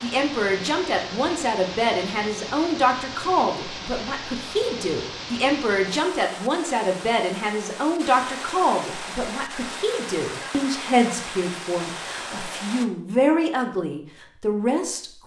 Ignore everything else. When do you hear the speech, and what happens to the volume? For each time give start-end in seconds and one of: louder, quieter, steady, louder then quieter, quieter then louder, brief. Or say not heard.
0.0-15.1 steady.